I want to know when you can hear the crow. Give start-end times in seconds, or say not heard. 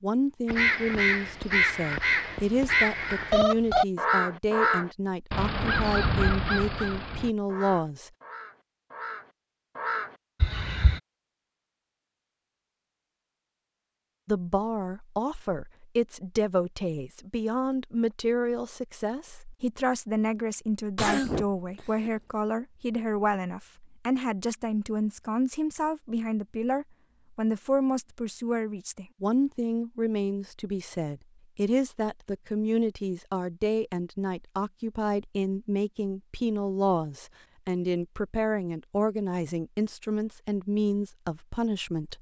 0.5-11.0.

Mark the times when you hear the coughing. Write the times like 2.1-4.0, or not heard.
20.9-22.1.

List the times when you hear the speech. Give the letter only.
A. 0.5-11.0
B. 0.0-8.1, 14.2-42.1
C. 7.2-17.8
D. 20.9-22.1
B.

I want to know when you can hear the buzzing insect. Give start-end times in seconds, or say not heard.
not heard.